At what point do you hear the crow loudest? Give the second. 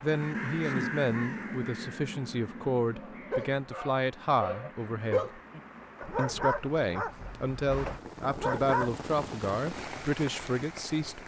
1 s.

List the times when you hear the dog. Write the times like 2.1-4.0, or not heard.
2.9-8.9.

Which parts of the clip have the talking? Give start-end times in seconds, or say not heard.
0.0-5.4, 6.2-11.2.